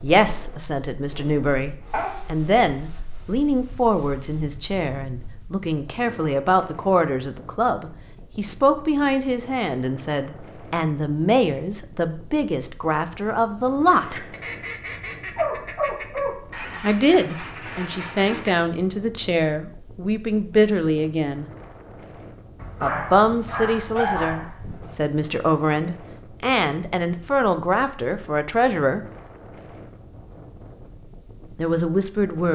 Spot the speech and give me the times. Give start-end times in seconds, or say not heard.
0.0-14.3, 16.8-21.4, 22.8-29.0, 31.6-32.5.